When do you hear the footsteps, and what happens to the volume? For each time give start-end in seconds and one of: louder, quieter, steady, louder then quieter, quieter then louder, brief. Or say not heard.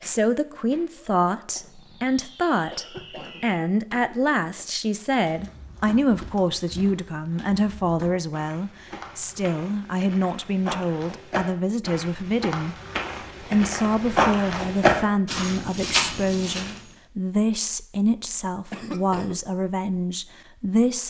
5.1-16.9 louder.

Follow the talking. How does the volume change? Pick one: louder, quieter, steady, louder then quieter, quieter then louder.
steady.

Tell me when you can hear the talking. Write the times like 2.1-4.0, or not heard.
0.0-12.8, 13.4-21.0.